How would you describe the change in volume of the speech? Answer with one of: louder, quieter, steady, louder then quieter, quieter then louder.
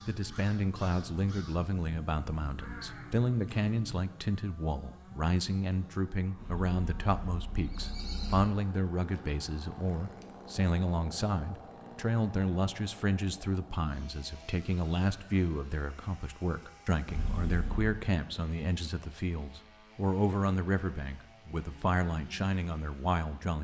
steady.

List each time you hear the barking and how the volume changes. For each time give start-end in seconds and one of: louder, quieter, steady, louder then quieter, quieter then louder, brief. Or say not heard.
not heard.